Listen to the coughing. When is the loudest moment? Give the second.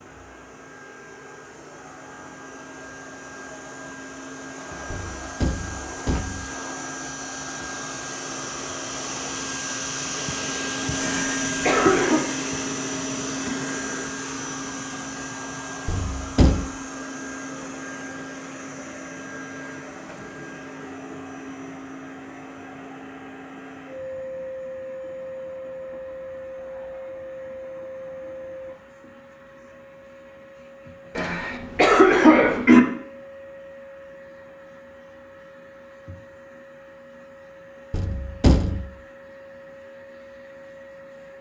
32 s.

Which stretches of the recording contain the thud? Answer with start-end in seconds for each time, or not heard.
4.9-6.5, 15.8-16.6, 37.9-38.9.